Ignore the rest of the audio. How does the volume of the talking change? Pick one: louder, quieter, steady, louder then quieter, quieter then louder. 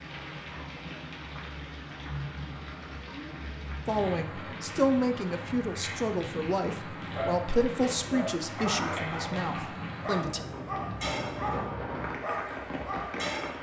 quieter.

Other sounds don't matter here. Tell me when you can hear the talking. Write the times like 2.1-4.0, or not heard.
3.9-10.4.